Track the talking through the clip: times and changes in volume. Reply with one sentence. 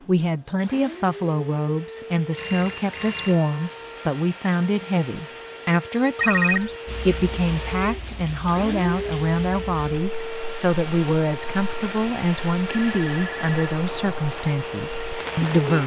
You can hear the talking from 0.1 to 15.8 s, at a steady volume.